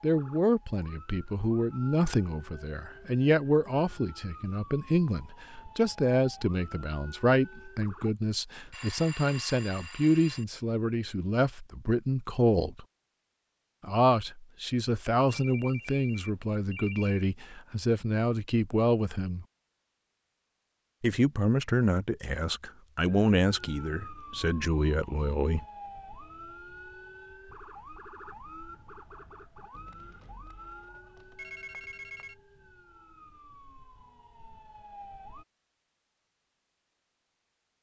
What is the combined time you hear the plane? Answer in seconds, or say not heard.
not heard.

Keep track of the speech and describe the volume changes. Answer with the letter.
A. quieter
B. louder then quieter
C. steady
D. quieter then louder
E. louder
C.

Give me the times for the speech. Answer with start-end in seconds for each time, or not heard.
0.0-12.8, 13.8-19.4, 21.0-25.6.